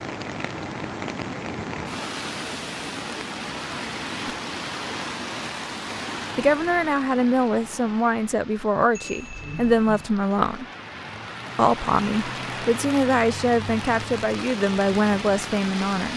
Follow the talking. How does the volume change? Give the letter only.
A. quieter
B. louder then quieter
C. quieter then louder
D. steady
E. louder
D.